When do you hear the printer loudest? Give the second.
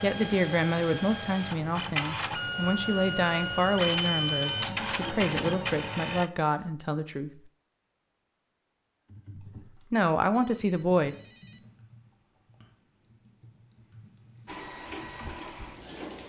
4 s.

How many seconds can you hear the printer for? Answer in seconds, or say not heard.
8 s.